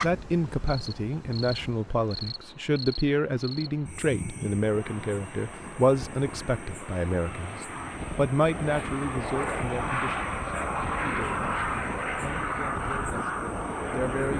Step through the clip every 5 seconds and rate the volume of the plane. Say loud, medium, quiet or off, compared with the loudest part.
quiet, medium, loud.